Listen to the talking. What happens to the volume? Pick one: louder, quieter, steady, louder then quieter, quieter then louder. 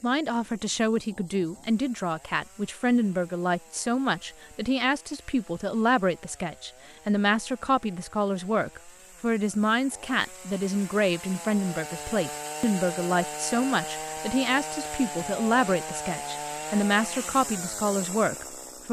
steady.